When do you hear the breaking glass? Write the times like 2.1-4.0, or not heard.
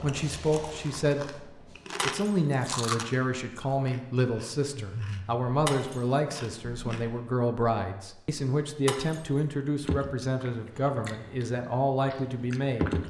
1.9-2.4, 5.7-6.2, 8.8-9.4.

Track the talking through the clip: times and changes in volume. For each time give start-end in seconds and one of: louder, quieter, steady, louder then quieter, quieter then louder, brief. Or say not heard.
0.0-13.0 steady.